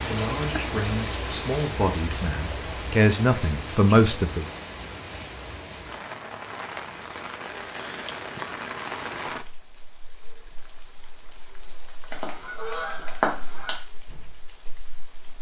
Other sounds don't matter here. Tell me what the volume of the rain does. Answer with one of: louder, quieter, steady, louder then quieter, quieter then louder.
quieter.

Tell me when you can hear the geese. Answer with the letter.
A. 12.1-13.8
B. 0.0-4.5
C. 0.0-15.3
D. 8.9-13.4
A.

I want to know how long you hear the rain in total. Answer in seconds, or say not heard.
15 s.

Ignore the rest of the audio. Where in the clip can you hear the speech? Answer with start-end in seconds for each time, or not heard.
0.0-4.5.